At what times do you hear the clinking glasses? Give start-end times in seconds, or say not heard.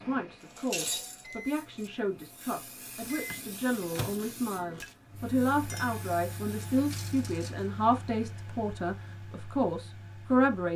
0.4-1.9, 5.7-6.1.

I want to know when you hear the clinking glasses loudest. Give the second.
1 s.